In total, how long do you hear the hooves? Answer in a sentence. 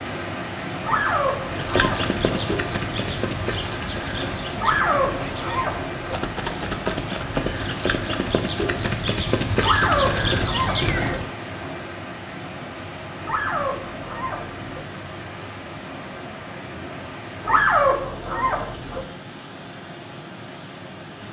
You can hear the hooves for 10 seconds altogether.